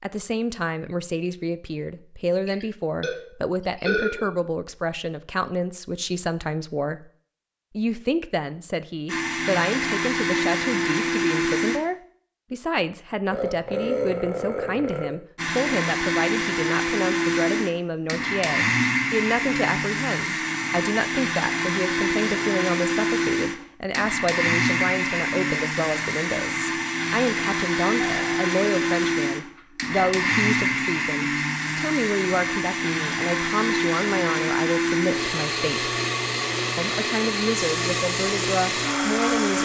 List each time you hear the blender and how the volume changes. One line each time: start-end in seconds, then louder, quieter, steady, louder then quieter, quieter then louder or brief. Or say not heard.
9.1-11.8 brief
15.3-39.5 steady.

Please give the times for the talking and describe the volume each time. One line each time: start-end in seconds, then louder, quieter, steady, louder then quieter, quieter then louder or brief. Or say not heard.
0.0-7.0 steady
7.8-35.9 steady
36.8-39.5 brief.